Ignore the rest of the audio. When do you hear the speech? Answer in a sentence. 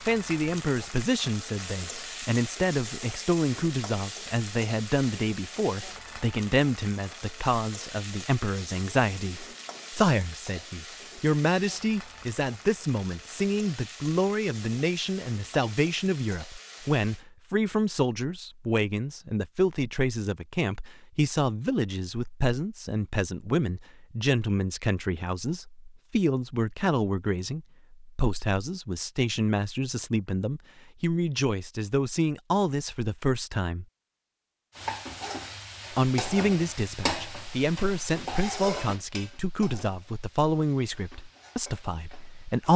You can hear the speech from 0.1 to 33.9 s and from 35.9 to 42.7 s.